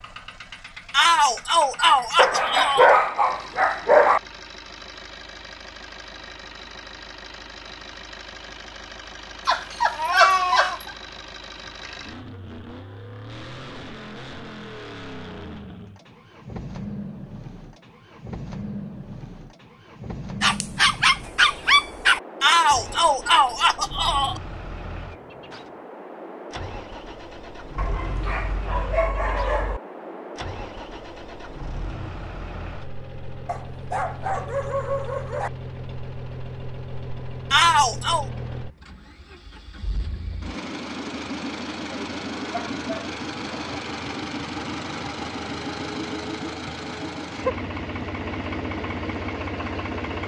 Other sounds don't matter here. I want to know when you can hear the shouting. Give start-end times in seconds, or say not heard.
0.9-2.9, 22.4-24.4, 37.5-38.2.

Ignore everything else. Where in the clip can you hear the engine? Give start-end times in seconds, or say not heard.
0.0-50.2.